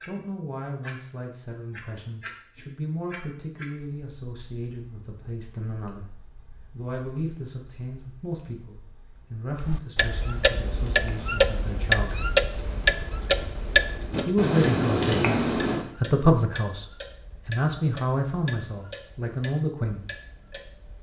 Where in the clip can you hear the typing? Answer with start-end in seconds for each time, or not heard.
10.6-15.8.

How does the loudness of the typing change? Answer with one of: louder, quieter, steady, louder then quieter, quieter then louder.
louder.